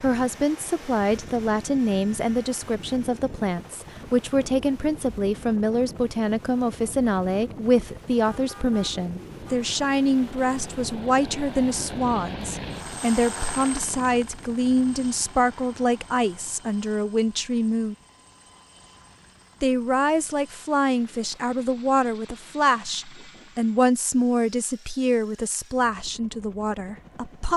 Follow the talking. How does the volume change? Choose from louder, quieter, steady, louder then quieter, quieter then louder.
steady.